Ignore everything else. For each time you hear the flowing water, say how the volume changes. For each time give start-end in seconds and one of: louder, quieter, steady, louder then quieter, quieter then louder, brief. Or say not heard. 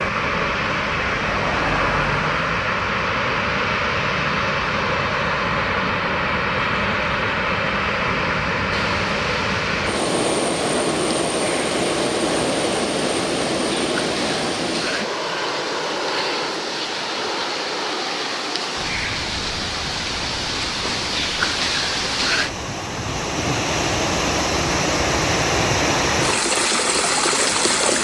8.7-28.0 louder.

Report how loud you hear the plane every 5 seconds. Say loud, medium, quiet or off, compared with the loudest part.
loud, loud, loud, medium, quiet, quiet.